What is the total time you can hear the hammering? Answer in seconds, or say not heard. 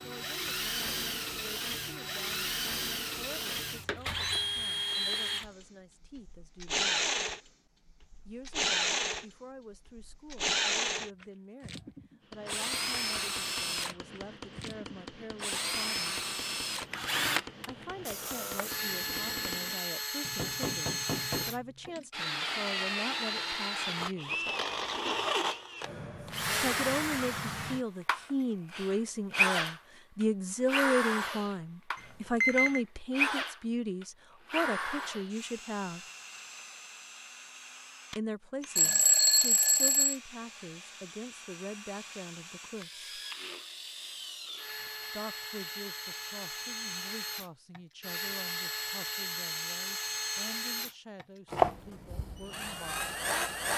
10 s.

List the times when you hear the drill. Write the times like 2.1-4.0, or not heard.
0.0-53.7.